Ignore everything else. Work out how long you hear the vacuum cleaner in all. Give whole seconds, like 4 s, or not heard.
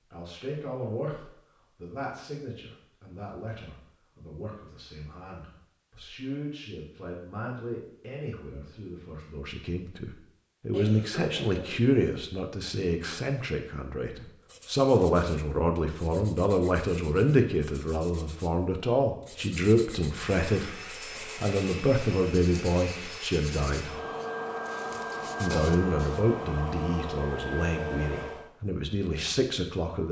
8 s.